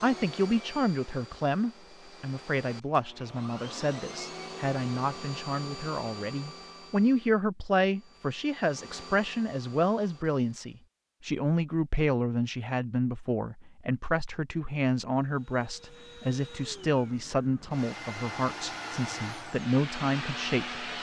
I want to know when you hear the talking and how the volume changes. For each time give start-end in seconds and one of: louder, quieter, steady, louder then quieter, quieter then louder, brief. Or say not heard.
0.0-20.8 steady.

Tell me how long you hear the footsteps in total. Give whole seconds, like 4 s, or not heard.
not heard.